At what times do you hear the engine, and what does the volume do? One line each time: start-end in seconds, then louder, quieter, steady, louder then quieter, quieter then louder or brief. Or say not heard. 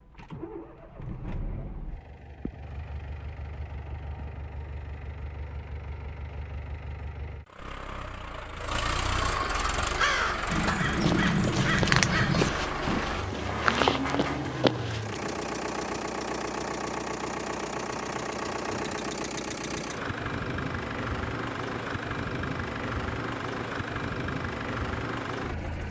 0.0-25.8 louder.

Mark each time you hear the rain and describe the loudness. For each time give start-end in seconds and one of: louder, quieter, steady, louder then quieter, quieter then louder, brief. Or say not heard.
not heard.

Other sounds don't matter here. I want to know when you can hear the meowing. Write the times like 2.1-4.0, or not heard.
not heard.